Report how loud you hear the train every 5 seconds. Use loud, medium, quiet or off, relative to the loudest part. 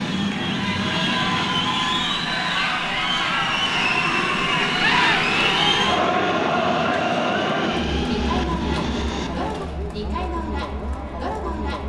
loud, loud, off.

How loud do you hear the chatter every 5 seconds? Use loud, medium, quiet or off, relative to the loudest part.
loud, loud, medium.